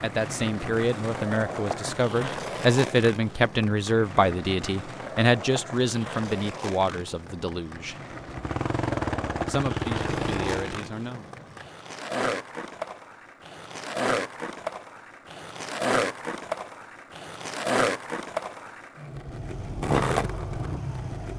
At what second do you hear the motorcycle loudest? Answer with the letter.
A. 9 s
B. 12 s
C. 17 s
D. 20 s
A.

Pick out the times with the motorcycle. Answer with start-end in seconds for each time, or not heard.
8.3-10.8, 19.4-21.3.